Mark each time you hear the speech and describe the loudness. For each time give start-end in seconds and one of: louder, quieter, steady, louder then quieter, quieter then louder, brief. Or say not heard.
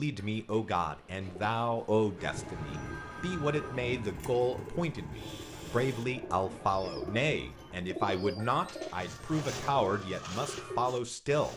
0.0-11.5 steady.